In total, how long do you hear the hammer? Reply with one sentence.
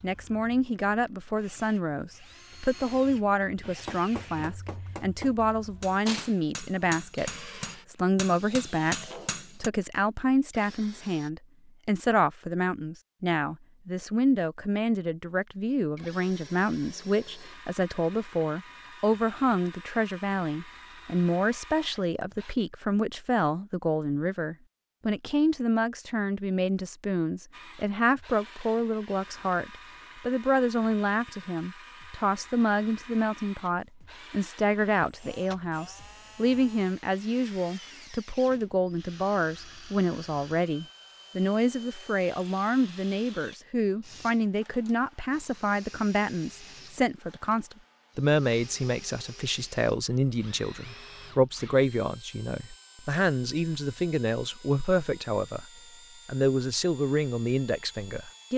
You can hear the hammer for 6 seconds altogether.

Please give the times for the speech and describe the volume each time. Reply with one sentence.
You can hear the speech from 0.0 to 55.6 s, at a steady volume; and briefly from 56.2 to 58.5 s.